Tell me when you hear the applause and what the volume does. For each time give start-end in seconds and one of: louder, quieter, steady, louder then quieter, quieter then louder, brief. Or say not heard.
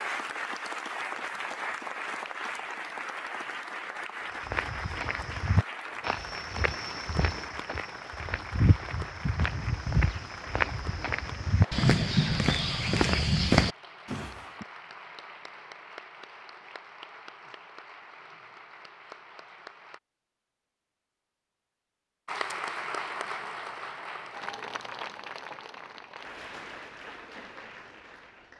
0.0-20.0 quieter
22.2-28.5 quieter.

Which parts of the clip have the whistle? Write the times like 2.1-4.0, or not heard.
not heard.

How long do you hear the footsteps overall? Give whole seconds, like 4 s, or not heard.
10 s.